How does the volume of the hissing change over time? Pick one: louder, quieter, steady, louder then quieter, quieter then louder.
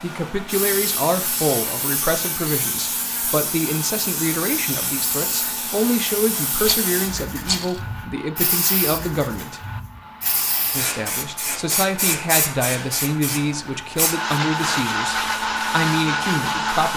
steady.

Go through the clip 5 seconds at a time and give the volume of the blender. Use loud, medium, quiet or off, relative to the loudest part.
quiet, quiet, medium, loud.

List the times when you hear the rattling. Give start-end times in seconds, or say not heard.
6.6-7.8.